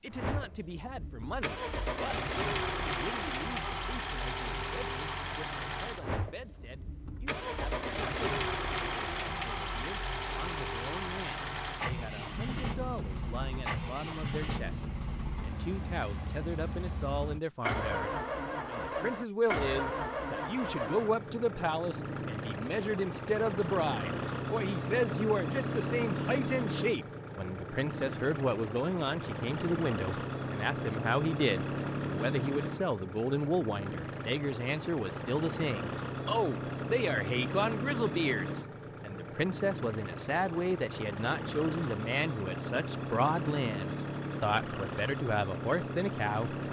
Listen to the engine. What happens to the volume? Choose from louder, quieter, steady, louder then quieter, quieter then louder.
steady.